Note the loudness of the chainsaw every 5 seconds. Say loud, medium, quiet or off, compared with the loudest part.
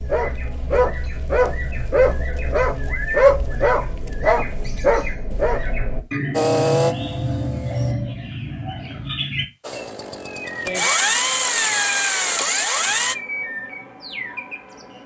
off, loud, loud.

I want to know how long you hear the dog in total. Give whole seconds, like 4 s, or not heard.
6 s.